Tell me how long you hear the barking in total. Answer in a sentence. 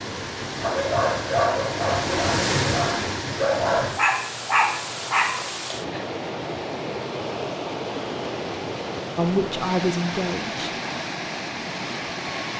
You can hear the barking for 5 seconds altogether.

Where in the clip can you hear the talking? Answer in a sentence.
You can hear the talking from 9.2 to 10.8 s.